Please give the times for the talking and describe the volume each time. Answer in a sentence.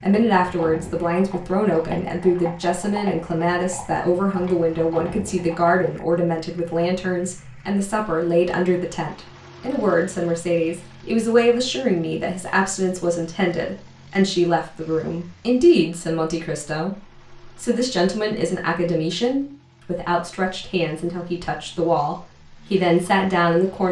The talking can be heard from 0.0 to 23.8 s, at a steady volume.